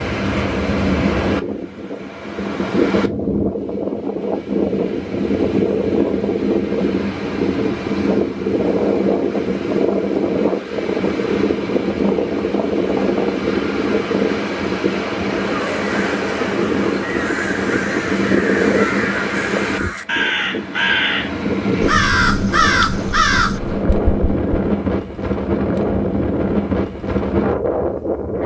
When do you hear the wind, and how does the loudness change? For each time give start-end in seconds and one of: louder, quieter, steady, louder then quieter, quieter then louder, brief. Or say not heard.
0.0-28.4 steady.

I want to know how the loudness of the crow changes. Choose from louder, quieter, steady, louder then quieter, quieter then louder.
louder.